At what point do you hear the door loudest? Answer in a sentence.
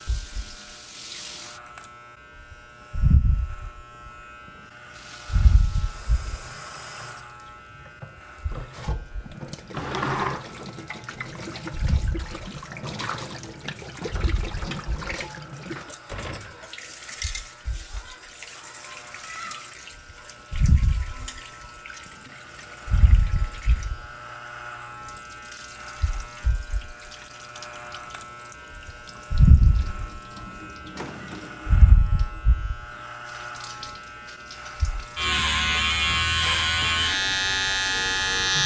The loudest moment of the door is at 10 seconds.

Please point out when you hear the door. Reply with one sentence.
You can hear the door from 9.7 to 10.4 s, from 15.8 to 16.7 s and from 30.4 to 31.6 s.